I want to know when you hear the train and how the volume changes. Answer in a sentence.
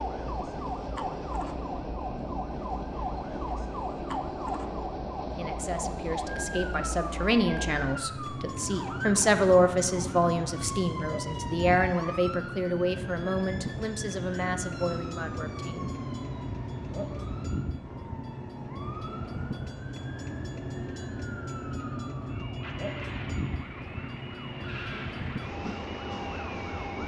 The train can be heard from 0.0 to 27.0 s, at a steady volume.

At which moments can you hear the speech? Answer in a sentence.
You can hear the speech from 5.3 to 15.9 s.